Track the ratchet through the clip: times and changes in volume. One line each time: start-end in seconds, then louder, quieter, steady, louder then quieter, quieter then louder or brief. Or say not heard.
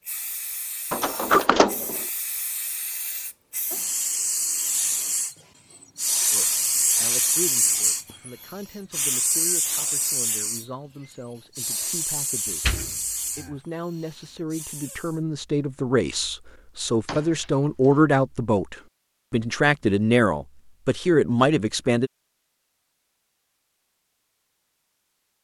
not heard.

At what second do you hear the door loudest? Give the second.
1 s.